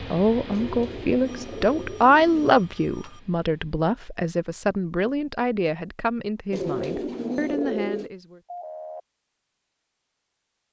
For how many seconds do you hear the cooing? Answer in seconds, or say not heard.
4 s.